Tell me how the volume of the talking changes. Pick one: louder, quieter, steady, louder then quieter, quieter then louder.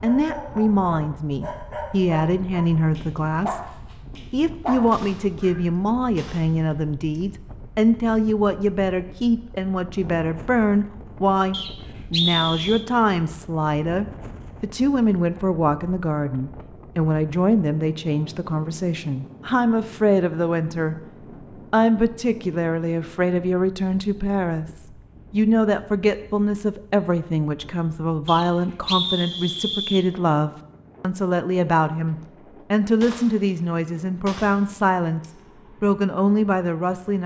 steady.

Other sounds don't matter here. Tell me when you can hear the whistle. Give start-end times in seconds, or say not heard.
11.5-12.8, 28.2-30.1.